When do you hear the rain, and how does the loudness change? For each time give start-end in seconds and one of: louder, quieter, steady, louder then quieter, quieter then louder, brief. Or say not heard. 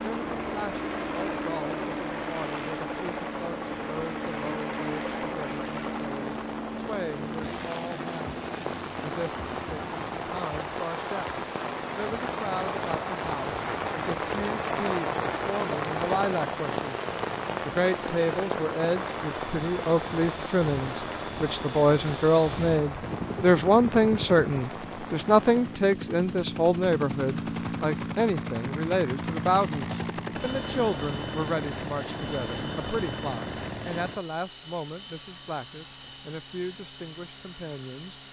0.0-25.8 louder then quieter.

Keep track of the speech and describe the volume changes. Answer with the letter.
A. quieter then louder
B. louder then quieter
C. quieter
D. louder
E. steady
B.